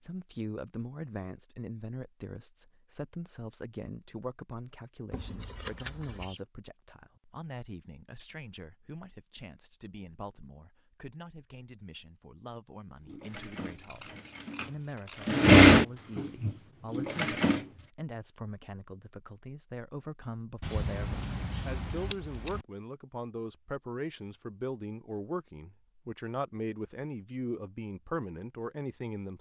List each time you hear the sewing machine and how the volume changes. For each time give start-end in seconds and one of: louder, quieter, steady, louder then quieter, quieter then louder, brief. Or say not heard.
13.1-17.6 louder then quieter.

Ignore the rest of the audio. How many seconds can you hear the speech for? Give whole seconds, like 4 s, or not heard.
29 s.